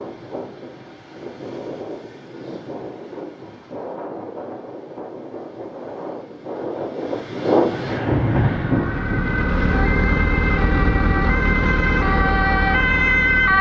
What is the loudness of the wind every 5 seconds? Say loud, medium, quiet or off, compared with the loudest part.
medium, loud, off.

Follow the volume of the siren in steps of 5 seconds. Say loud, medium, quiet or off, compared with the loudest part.
off, medium, loud.